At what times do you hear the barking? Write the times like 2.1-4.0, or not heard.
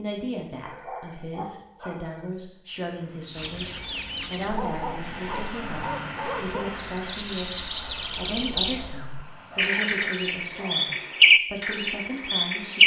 0.7-2.3, 4.5-6.8, 8.9-10.8.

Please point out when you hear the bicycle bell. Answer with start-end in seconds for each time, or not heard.
not heard.